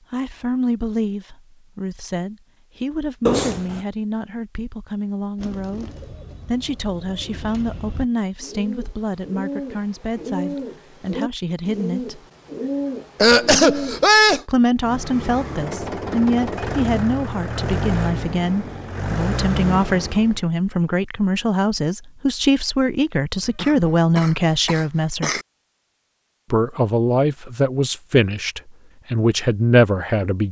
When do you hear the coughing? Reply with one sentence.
You can hear the coughing from 3.2 to 3.8 s, from 13.2 to 14.4 s and from 23.6 to 25.4 s.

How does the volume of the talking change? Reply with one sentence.
The loudness of the talking goes up.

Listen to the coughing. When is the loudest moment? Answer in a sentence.
The loudest moment of the coughing is at 14 seconds.